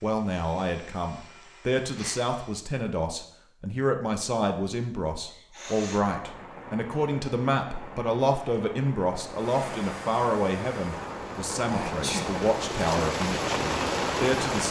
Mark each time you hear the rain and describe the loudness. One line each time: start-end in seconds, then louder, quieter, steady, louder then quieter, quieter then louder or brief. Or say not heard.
6.0-14.6 louder.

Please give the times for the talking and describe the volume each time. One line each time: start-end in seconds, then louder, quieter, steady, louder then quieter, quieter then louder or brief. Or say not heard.
0.0-14.6 steady.